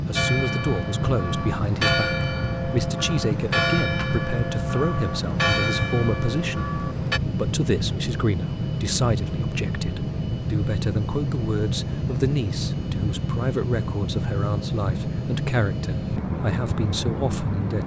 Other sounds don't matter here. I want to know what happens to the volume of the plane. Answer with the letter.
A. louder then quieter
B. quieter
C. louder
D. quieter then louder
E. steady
E.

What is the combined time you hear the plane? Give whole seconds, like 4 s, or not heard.
18 s.